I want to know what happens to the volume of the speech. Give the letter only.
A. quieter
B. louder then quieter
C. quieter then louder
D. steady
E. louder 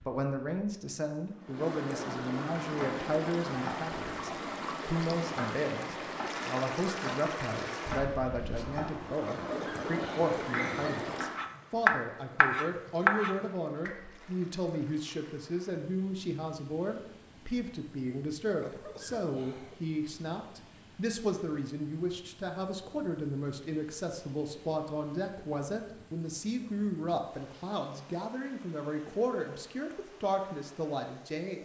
D.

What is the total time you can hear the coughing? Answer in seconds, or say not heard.
3 s.